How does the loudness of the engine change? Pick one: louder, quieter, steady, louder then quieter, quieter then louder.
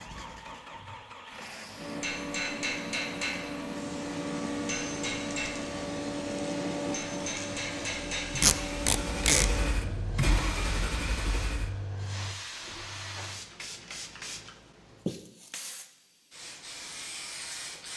louder.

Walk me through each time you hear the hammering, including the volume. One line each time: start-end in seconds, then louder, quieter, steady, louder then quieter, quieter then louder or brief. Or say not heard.
1.8-9.7 steady.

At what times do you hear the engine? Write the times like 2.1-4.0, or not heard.
0.0-12.9.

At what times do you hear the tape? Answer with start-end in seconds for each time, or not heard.
8.4-9.4.